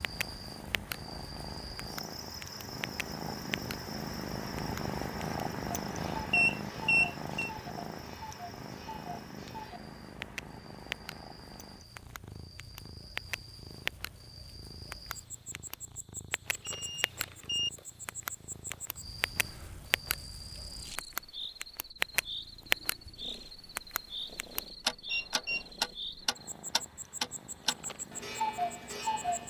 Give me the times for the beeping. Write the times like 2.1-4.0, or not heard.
6.3-7.5, 16.6-17.7, 25.1-25.6.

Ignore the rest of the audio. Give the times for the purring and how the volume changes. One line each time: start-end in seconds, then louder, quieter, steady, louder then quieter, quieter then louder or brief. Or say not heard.
0.0-29.4 quieter.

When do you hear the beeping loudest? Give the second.
7 s.